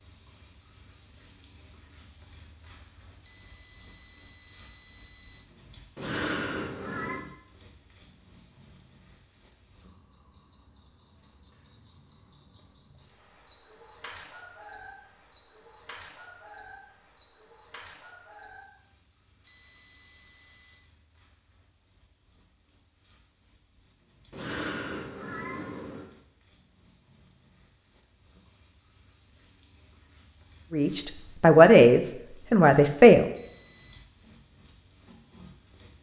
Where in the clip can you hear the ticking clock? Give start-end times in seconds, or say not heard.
not heard.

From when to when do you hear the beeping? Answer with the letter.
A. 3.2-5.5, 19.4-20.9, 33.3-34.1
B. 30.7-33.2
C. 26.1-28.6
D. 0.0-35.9
A.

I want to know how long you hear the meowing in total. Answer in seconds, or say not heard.
3 s.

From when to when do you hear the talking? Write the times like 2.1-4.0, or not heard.
30.7-33.2.